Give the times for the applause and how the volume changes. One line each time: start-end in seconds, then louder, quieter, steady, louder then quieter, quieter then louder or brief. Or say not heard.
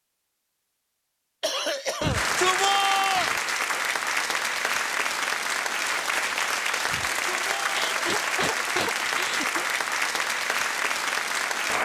2.1-11.8 steady.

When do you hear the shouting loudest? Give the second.
3 s.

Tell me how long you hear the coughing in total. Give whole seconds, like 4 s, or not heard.
3 s.